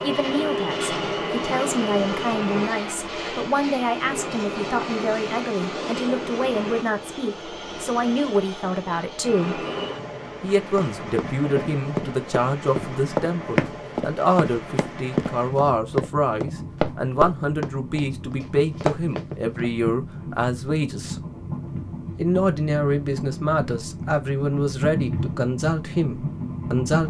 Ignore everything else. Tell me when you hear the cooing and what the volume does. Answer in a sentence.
The cooing can't be heard in this clip.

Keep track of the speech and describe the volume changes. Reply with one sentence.
The loudness of the speech stays about the same.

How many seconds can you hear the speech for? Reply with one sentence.
You can hear the speech for 25 seconds altogether.